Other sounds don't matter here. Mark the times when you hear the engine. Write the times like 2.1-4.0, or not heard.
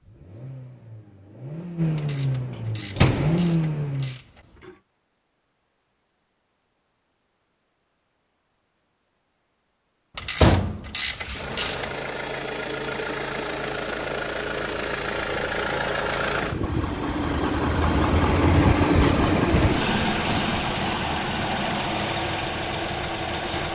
0.0-4.2, 11.2-23.7.